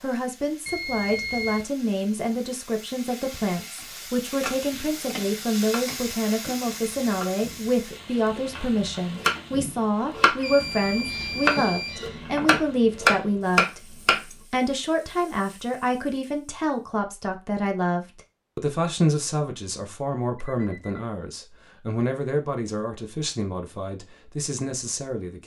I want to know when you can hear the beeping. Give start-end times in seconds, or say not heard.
0.7-1.6, 10.4-12.0, 20.4-21.0.